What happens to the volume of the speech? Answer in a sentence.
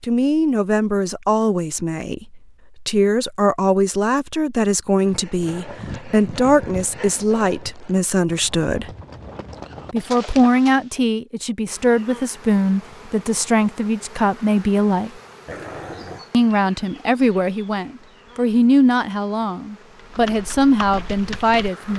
The loudness of the speech stays about the same.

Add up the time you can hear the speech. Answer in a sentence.
You can hear the speech for 20 seconds altogether.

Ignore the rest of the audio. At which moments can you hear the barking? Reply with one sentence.
The barking can be heard from 15.4 to 16.3 s.